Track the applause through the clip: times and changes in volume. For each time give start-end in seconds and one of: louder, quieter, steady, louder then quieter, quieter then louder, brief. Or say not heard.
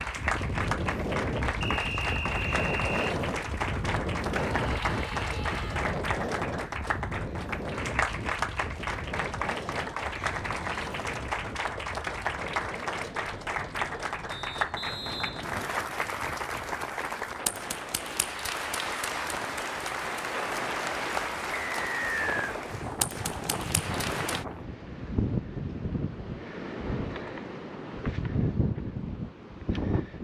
0.0-24.4 steady.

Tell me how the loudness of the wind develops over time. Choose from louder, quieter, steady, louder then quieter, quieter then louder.
quieter then louder.